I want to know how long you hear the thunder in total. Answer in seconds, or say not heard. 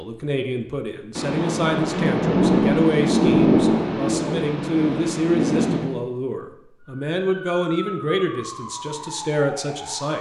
5 s.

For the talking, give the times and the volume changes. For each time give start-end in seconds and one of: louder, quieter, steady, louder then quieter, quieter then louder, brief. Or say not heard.
0.0-10.1 steady.